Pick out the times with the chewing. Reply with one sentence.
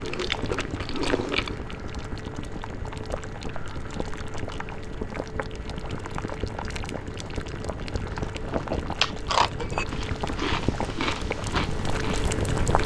The chewing can be heard from 0.0 to 1.6 s and from 8.1 to 12.8 s.